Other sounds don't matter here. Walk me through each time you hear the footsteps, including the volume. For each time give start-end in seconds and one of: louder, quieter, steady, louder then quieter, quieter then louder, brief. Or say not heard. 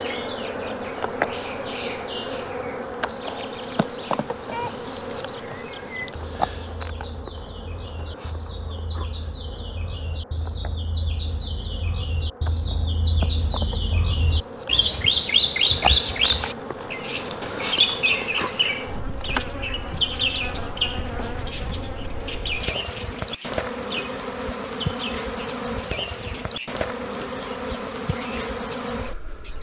not heard.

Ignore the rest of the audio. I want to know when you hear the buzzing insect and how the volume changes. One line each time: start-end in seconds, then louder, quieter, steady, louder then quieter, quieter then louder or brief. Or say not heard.
0.0-29.5 quieter then louder.